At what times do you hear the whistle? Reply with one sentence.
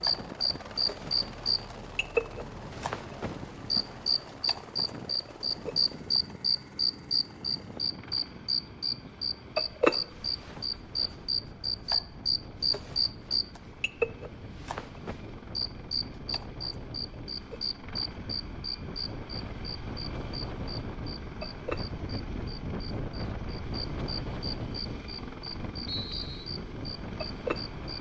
The whistle can be heard from 25.9 to 26.5 s.